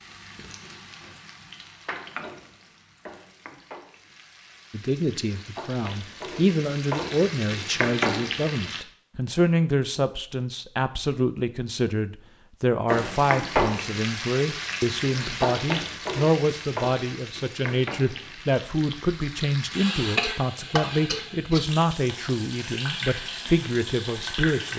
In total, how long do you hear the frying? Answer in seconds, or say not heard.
21 s.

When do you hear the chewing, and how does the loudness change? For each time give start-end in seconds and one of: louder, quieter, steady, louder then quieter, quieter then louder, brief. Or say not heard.
not heard.